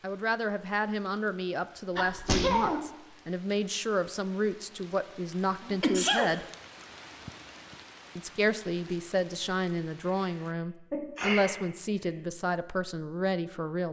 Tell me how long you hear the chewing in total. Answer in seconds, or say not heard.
not heard.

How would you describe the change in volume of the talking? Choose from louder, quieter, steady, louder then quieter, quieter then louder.
steady.